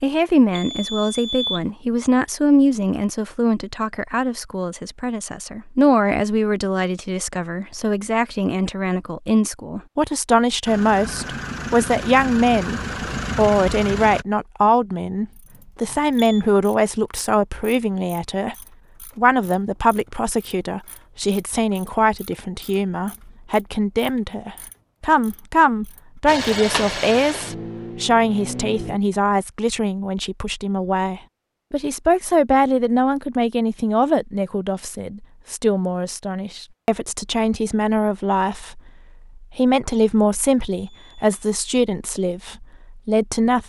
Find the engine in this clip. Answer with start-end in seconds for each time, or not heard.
10.7-14.2, 26.2-29.0.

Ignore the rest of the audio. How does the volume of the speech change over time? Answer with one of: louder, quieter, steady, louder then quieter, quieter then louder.
steady.